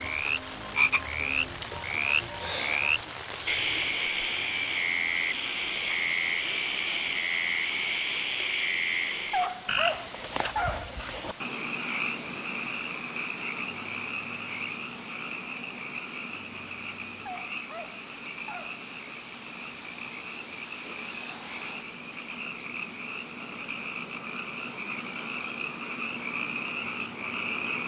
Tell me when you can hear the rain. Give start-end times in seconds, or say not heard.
0.0-27.8.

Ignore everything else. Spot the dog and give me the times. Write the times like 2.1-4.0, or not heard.
9.3-11.0, 17.2-18.9.